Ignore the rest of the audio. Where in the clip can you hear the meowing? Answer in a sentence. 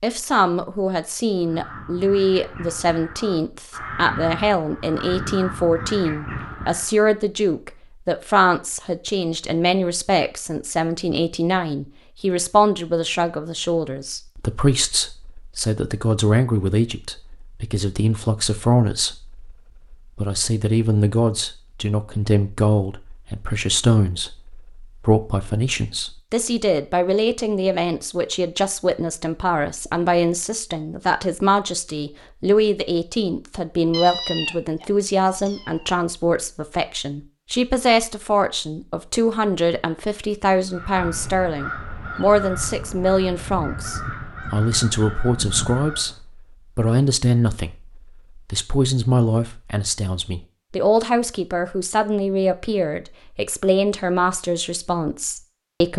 The meowing can be heard from 33.9 to 35.9 s.